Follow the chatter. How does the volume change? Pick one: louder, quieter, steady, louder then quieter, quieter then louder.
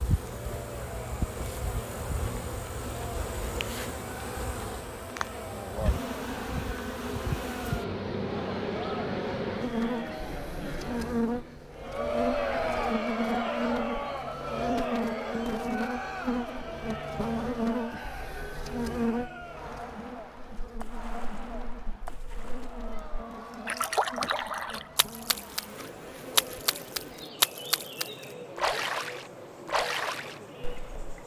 louder then quieter.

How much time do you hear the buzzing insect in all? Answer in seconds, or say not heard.
31 s.